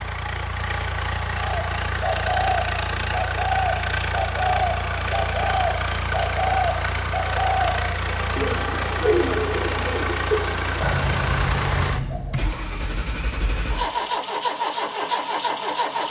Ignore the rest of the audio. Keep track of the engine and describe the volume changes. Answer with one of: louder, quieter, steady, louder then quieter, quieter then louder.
steady.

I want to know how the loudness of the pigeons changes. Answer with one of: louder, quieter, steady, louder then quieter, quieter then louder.
steady.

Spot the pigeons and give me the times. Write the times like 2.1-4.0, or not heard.
1.6-12.4.